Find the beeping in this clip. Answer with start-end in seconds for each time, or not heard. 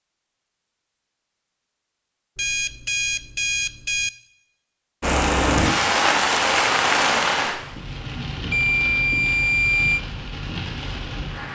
2.4-4.1, 8.5-10.0.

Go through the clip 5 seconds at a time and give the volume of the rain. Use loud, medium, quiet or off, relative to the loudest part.
off, loud, medium.